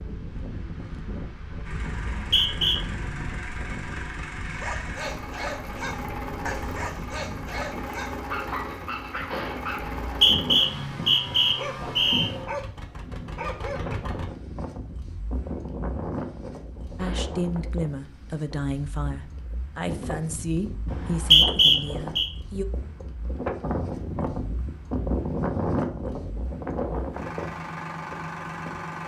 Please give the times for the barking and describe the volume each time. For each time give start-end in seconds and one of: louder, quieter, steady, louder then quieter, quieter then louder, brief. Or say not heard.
4.5-14.0 steady.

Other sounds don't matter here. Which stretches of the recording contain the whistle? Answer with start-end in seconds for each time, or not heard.
2.1-2.8, 9.8-12.3, 20.9-22.3.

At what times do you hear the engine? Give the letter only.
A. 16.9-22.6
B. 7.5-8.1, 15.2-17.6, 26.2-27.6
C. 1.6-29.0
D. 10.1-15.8
C.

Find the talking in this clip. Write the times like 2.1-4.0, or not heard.
16.9-22.6.